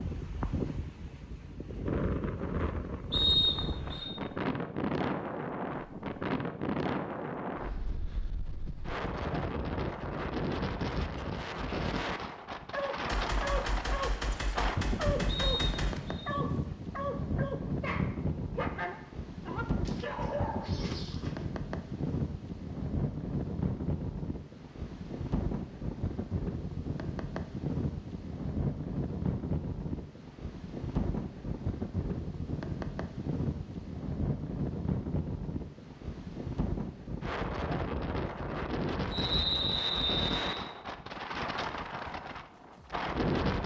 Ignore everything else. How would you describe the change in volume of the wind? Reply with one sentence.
The volume of the wind stays about the same.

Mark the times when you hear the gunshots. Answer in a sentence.
The gunshots can be heard from 13.1 to 16.0 s.